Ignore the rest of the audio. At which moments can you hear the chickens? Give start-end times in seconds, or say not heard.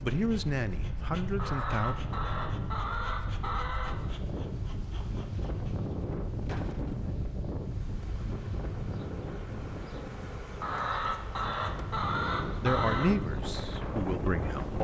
1.4-4.1, 10.6-13.2.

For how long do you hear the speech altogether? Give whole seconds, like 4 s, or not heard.
4 s.